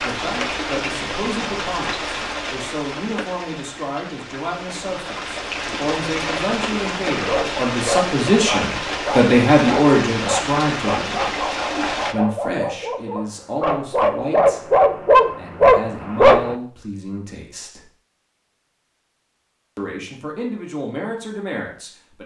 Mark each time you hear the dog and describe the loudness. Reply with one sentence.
You can hear the dog from 7.2 to 16.6 s, getting louder.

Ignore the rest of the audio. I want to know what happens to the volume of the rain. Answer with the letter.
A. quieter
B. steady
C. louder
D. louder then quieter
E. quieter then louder
E.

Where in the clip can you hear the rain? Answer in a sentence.
The rain can be heard from 0.0 to 12.2 s.